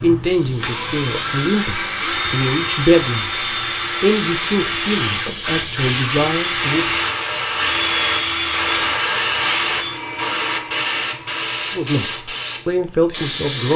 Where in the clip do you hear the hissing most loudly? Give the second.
9 s.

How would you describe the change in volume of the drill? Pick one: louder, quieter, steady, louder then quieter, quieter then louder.
quieter.